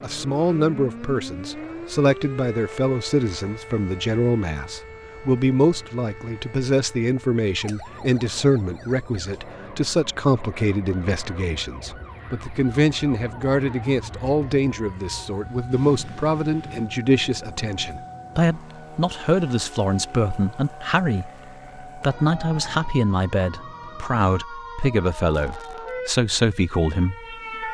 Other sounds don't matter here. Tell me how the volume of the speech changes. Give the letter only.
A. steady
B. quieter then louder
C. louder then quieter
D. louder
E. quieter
A.